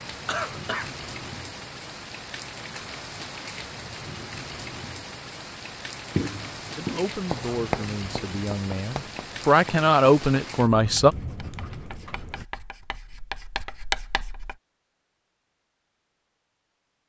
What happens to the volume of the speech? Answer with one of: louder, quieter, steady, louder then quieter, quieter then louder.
louder.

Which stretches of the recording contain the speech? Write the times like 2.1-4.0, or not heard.
6.8-11.1.